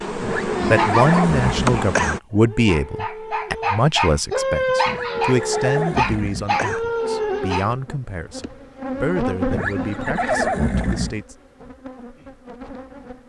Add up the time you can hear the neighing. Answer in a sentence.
The neighing can be heard for 6 seconds in total.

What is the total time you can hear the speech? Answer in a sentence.
You can hear the speech for 11 seconds altogether.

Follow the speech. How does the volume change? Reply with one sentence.
The loudness of the speech goes down.